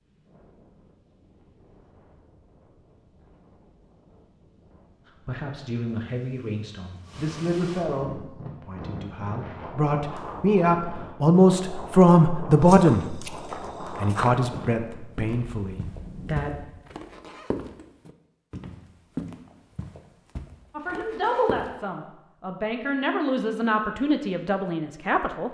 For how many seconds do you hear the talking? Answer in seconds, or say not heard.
15 s.